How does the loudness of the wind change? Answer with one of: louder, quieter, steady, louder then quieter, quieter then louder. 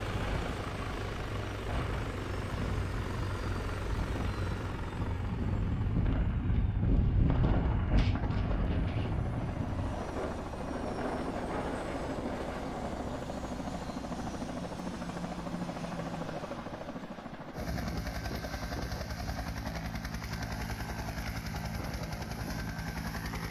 louder then quieter.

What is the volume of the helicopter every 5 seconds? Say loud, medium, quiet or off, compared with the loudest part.
loud, medium, loud, loud, loud.